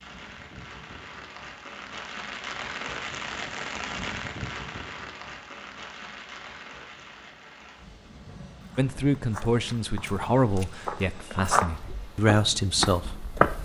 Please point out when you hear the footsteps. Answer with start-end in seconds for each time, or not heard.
8.2-13.6.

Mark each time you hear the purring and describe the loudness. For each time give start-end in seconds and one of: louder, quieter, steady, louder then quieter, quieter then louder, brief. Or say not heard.
not heard.